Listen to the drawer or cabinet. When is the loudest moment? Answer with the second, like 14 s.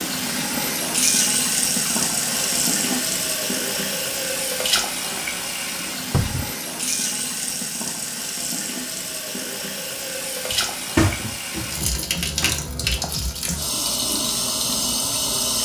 11 s.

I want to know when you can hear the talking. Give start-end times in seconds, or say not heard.
not heard.